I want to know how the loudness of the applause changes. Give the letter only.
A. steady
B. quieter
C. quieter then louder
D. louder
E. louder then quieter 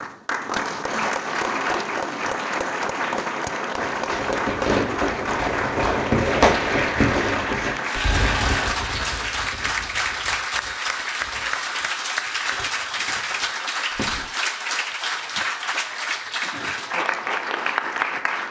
A.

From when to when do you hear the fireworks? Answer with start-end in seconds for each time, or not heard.
3.8-14.3.